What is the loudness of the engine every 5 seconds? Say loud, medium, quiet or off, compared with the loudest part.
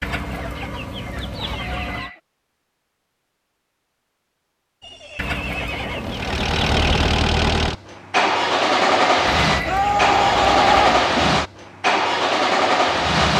off, loud, loud.